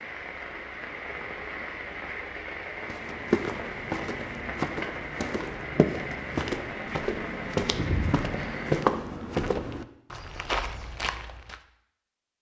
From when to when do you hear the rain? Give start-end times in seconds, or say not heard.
0.0-8.8.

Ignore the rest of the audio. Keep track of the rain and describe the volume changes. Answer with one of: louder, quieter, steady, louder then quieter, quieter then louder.
steady.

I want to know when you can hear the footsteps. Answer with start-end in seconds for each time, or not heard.
2.9-11.6.